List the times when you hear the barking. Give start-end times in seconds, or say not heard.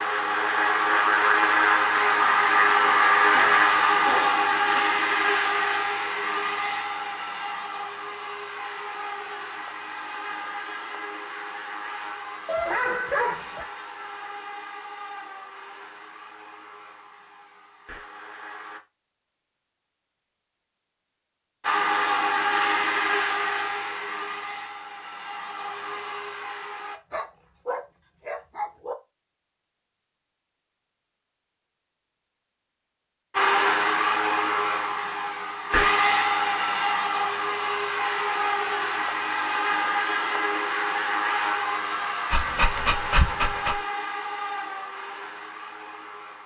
2.9-4.8, 12.4-13.7, 26.9-28.9, 42.3-43.8.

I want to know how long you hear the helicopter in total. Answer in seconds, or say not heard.
37 s.